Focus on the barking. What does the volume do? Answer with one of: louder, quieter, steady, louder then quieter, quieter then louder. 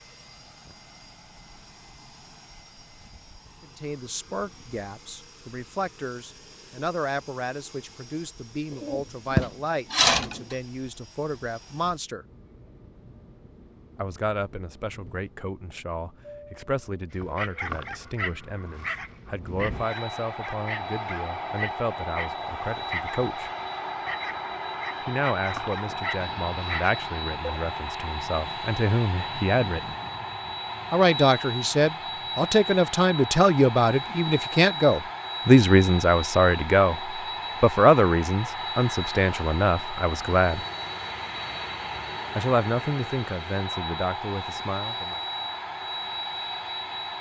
steady.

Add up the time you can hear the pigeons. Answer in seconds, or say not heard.
2 s.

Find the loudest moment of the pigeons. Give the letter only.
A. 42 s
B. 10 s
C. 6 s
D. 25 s
B.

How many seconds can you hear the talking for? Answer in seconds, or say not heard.
36 s.